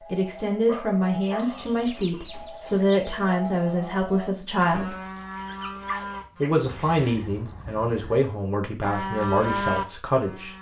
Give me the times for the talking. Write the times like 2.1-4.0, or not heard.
0.1-5.0, 6.4-10.5.